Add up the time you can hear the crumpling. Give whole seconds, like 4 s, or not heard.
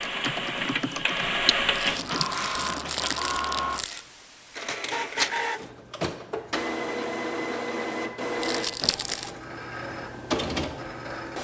3 s.